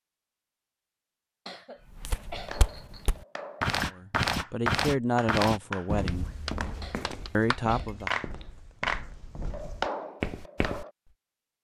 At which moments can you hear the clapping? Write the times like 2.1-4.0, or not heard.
2.1-10.9.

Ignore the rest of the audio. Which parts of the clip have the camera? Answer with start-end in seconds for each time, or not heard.
not heard.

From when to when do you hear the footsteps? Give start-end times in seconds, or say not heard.
1.9-10.8.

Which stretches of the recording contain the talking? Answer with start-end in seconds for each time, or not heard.
3.9-6.3, 7.3-8.2.